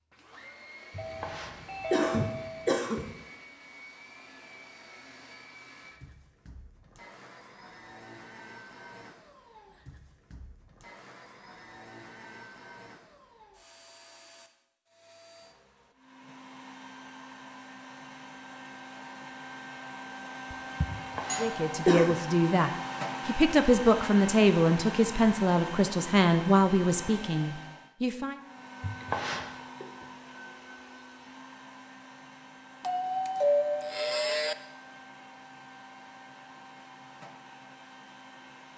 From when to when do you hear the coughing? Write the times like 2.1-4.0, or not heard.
0.9-3.1, 20.9-22.1, 28.8-29.9.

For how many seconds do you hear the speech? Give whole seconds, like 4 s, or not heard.
7 s.